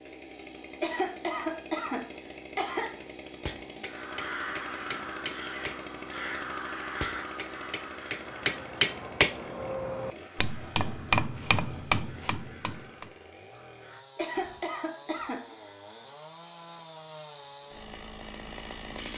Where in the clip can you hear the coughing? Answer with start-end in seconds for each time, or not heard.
0.8-3.0, 14.2-15.6.